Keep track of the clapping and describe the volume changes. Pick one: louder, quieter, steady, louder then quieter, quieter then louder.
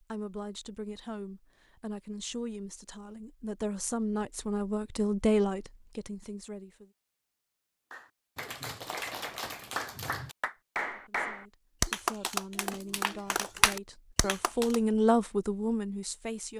louder.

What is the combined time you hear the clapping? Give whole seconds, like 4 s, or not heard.
7 s.